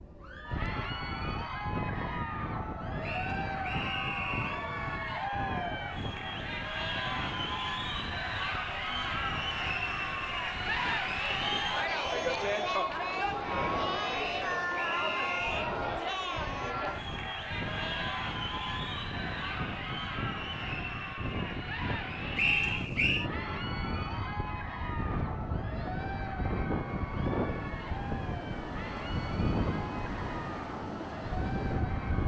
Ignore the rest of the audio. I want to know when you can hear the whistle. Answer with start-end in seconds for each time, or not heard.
3.0-4.7, 14.2-15.7, 22.4-23.3.